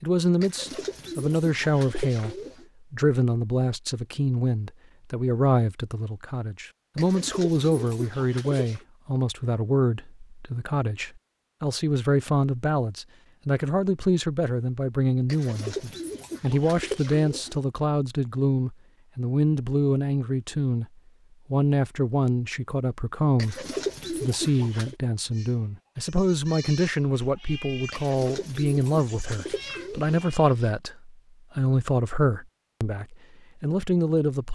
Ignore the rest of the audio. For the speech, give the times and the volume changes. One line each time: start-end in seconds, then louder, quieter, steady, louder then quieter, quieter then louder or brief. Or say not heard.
0.0-20.9 steady
21.5-34.5 steady.